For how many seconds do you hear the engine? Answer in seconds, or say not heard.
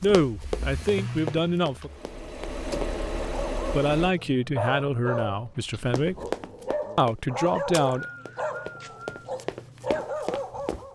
4 s.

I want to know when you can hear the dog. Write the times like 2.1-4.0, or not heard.
3.2-10.9.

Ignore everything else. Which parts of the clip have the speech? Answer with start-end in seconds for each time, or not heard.
0.0-1.9, 3.7-6.2, 7.0-8.1.